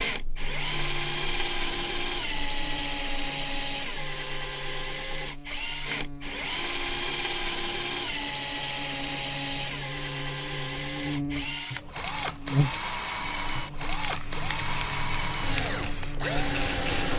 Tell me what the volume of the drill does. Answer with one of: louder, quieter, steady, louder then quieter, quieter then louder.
steady.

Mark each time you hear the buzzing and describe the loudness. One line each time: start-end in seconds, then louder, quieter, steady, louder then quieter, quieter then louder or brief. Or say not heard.
0.1-17.1 louder then quieter.